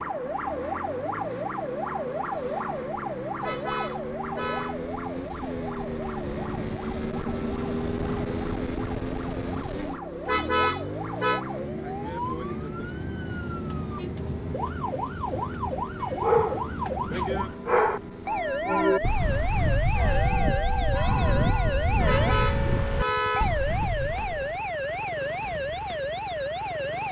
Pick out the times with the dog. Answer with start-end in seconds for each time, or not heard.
16.0-18.0.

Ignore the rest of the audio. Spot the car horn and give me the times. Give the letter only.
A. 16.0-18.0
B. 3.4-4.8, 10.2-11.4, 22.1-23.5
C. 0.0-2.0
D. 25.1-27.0
B.